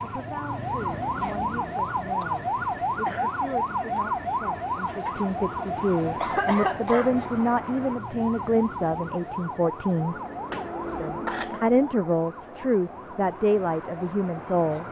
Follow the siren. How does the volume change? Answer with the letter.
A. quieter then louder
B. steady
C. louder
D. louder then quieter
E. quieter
E.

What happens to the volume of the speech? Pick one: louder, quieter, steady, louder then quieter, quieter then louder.
louder.